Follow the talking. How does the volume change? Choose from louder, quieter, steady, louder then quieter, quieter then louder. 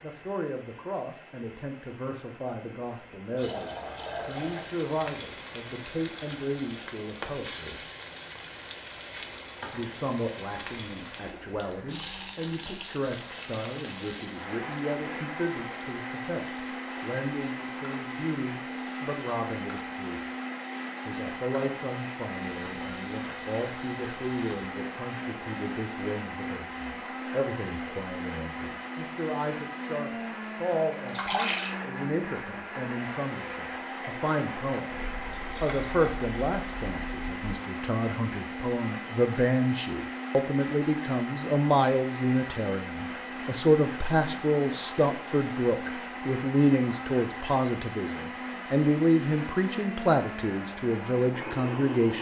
louder.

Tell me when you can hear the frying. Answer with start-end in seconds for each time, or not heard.
4.2-24.8.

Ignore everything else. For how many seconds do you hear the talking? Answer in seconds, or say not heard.
49 s.